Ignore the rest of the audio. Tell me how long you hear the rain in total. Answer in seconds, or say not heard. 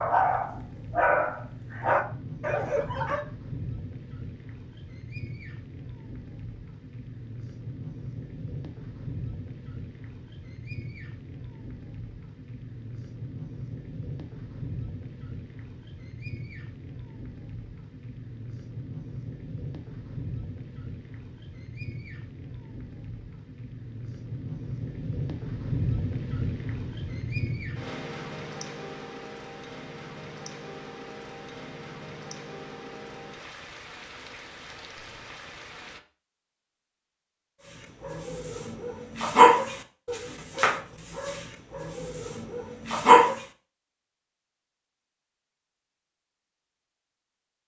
36 s.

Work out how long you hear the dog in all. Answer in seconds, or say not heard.
9 s.